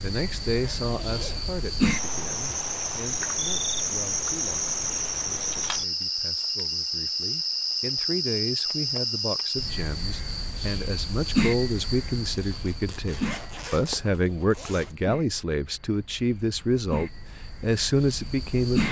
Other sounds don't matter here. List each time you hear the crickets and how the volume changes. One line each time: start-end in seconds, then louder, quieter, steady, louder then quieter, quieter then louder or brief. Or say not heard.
0.0-18.8 quieter.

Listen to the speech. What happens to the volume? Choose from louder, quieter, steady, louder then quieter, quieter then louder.
quieter then louder.